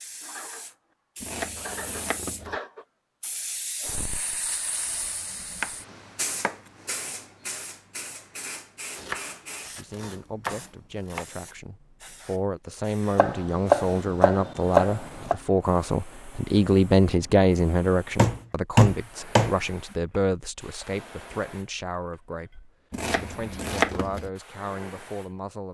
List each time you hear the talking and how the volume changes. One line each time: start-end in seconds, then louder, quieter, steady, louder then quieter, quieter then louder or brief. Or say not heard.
9.8-25.7 louder then quieter.